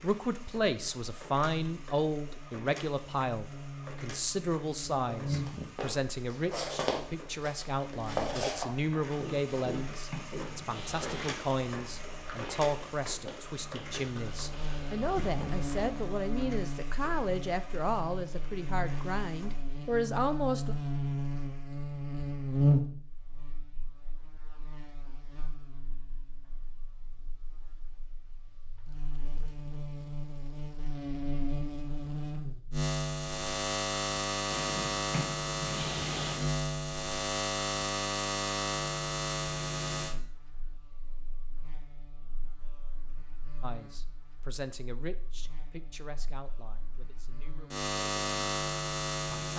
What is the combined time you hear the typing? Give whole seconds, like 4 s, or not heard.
not heard.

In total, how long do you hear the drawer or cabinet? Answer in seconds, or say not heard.
4 s.